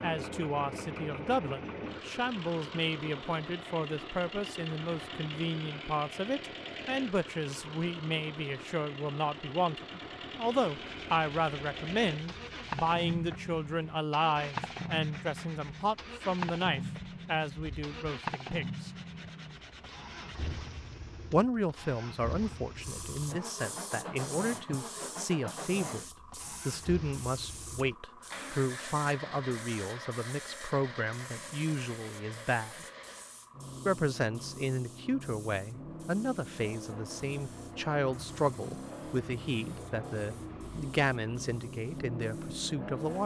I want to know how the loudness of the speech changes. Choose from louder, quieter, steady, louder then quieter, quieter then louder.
steady.